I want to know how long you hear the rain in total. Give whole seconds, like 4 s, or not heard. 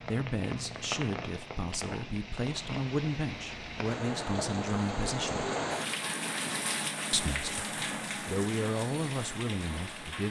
10 s.